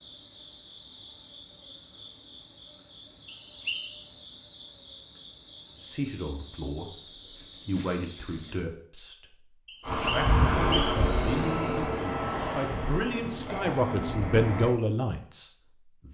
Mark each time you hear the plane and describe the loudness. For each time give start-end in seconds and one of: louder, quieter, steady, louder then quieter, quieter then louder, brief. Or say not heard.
9.8-14.8 quieter.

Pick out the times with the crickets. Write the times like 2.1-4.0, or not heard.
0.0-8.6.